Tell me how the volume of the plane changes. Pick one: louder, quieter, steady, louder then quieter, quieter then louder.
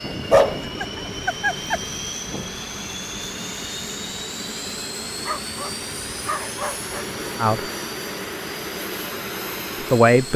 steady.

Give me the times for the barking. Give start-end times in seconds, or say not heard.
0.3-1.8, 5.2-7.1.